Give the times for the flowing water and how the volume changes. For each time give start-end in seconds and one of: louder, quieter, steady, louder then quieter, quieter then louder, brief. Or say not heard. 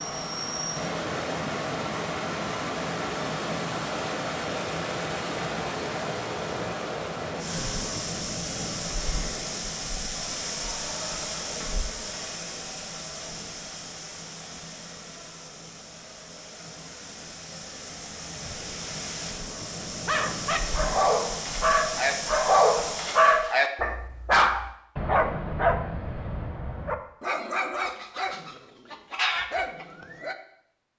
0.0-23.4 quieter then louder.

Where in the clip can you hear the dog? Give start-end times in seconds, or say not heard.
20.1-30.4.